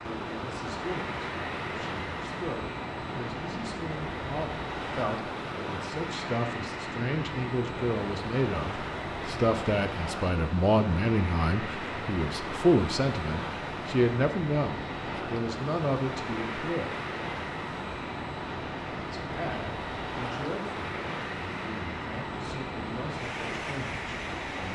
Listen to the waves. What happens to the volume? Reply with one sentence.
The volume of the waves stays about the same.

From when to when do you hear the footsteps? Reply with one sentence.
The footsteps can't be heard in this clip.